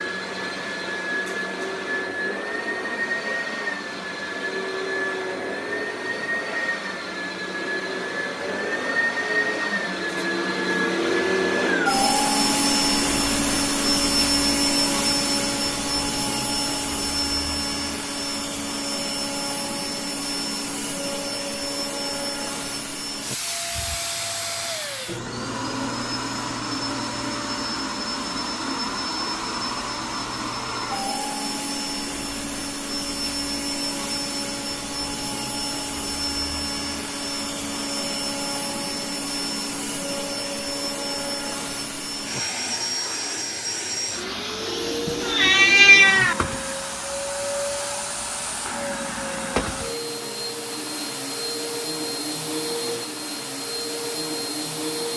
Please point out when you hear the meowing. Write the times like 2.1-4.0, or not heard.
45.0-46.4.